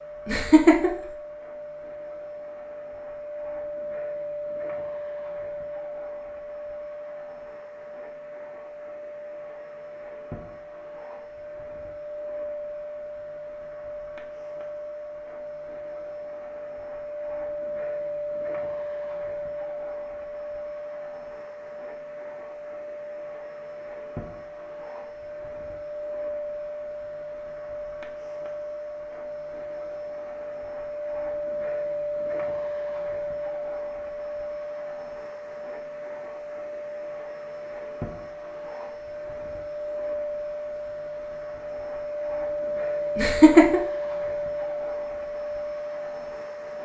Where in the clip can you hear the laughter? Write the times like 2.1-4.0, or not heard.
0.2-0.9, 43.1-43.8.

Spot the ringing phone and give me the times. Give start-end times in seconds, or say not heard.
not heard.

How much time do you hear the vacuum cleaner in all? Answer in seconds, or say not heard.
47 s.